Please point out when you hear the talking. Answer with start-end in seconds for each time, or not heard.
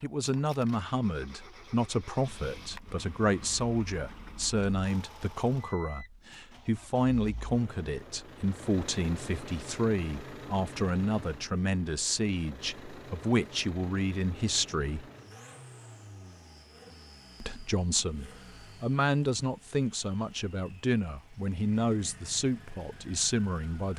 0.0-15.1, 17.4-23.9.